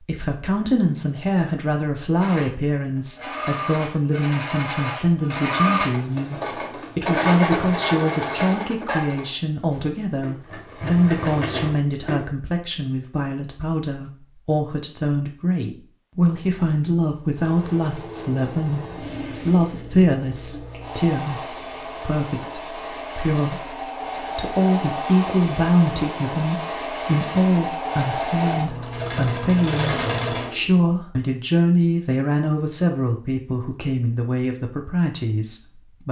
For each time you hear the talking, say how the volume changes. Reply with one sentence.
The talking can be heard from 0.0 to 36.0 s, at a steady volume.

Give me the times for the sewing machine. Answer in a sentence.
You can hear the sewing machine from 2.1 to 12.2 s and from 17.3 to 30.6 s.